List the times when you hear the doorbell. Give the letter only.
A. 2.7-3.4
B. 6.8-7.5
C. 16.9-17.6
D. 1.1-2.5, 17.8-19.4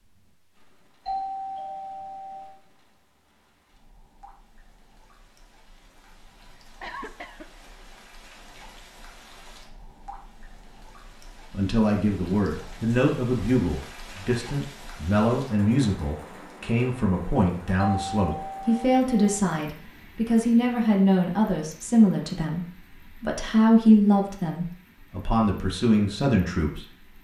D.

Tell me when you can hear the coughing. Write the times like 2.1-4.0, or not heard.
6.8-7.5.